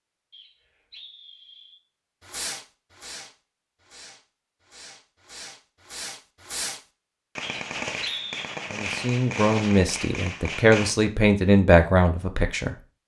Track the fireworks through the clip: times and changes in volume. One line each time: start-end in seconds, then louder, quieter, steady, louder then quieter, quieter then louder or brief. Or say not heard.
2.2-10.9 louder.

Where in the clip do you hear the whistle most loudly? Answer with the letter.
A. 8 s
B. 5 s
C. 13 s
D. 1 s
A.